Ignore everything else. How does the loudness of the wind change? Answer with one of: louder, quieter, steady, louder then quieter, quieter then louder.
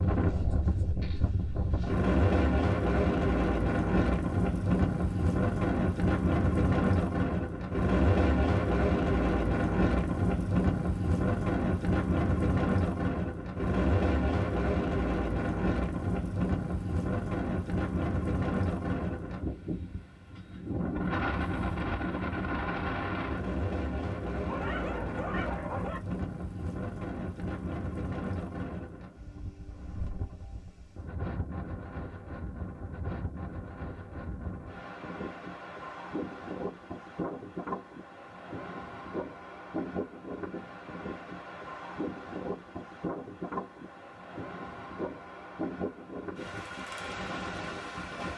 quieter.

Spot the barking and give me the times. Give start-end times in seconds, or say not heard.
24.4-26.0.